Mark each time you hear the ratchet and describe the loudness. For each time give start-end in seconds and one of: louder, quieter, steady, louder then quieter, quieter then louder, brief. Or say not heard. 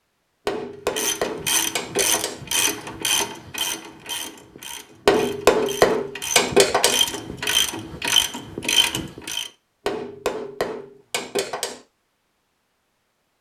0.9-9.5 quieter then louder.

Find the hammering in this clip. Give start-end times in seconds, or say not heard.
0.5-2.4, 5.0-7.0, 9.8-11.8.